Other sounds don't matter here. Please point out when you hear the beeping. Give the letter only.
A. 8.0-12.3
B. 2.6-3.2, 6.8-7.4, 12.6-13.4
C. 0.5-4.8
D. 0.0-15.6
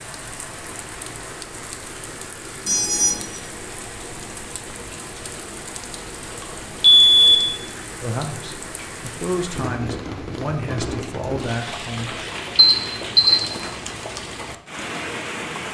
B.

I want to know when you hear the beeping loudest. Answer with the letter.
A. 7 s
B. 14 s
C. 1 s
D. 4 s
A.